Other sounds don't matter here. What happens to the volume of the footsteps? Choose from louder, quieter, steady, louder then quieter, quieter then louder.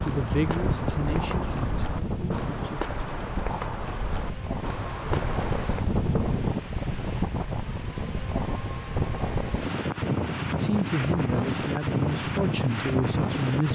steady.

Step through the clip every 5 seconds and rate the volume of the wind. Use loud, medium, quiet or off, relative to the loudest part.
medium, loud, loud.